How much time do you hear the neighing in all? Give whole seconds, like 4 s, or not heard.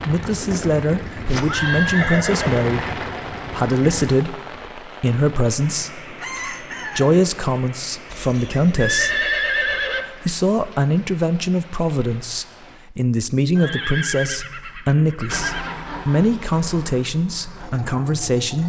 6 s.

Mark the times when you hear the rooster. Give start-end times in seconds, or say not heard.
6.2-7.2.